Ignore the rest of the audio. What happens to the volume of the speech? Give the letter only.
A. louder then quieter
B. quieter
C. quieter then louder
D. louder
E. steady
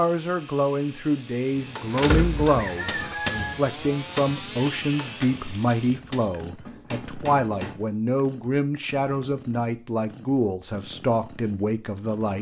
E.